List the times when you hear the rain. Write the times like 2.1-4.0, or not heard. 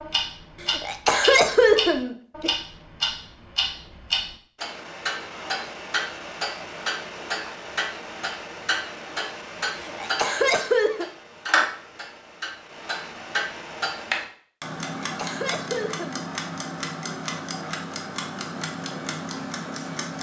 not heard.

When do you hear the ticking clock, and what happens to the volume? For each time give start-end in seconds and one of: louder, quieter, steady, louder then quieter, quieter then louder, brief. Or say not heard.
0.0-20.1 steady.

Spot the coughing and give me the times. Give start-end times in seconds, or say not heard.
0.7-2.5, 9.8-11.1, 15.0-16.2.